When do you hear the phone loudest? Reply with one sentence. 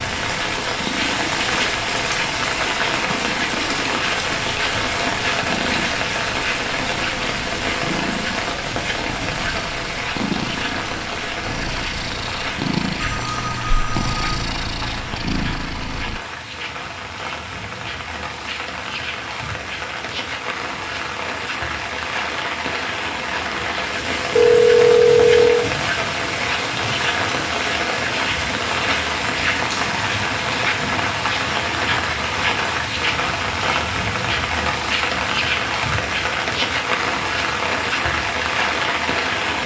The volume of the phone peaks at 25 seconds.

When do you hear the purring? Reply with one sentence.
You can hear the purring from 0.0 to 16.2 s.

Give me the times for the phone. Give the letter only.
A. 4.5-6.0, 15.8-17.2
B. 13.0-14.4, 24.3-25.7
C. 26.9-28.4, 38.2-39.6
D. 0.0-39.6
B.